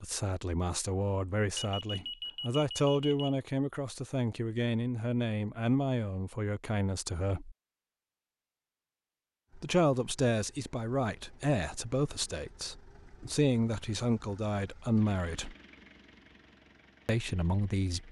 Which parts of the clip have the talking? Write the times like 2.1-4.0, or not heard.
0.0-7.5, 9.6-15.6, 17.1-18.0.